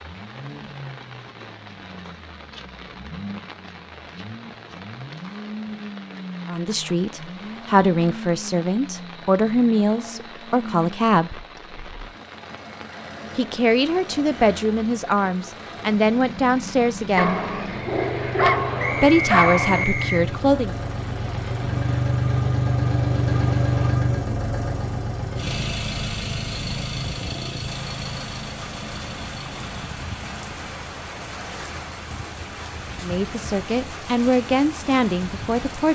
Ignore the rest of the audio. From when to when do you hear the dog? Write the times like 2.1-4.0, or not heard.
17.1-19.9.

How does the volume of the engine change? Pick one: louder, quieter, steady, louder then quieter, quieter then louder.
louder then quieter.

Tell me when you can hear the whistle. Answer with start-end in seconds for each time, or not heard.
18.8-20.2.